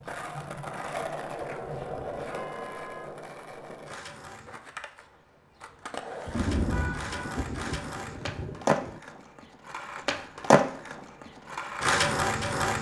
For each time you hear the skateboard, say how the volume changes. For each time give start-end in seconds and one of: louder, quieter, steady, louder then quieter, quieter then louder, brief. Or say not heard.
0.0-12.7 quieter then louder.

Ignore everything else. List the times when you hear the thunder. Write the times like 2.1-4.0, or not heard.
6.2-9.0.